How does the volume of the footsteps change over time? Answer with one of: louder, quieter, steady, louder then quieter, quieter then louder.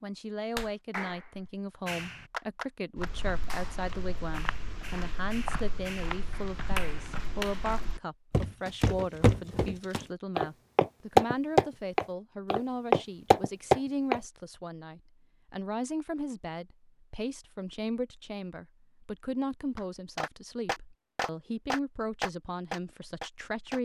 louder.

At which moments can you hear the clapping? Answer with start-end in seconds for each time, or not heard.
0.6-7.8, 19.8-23.8.